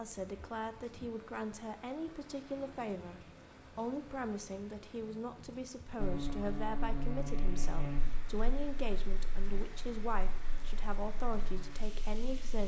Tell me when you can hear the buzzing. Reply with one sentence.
The buzzing can be heard from 6.0 to 12.6 s.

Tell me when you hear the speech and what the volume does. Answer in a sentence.
You can hear the speech from 0.0 to 12.6 s, at a steady volume.